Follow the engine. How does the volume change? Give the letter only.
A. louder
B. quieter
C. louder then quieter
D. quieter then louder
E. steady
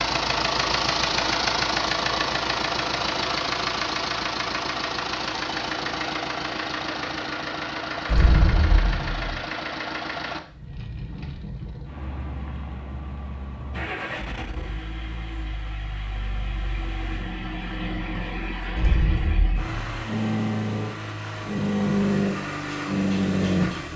D.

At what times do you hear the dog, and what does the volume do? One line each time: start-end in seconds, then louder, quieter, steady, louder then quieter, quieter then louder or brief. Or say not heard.
not heard.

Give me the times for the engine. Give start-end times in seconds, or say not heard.
0.0-23.9.